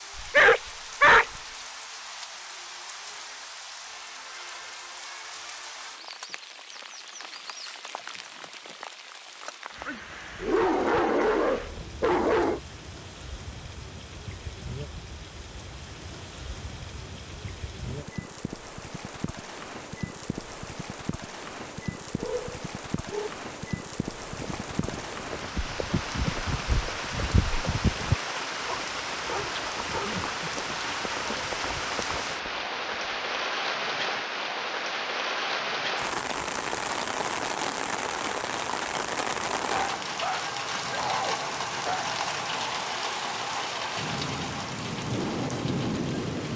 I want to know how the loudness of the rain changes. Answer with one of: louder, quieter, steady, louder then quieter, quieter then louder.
louder.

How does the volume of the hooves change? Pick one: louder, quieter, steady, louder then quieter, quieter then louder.
louder then quieter.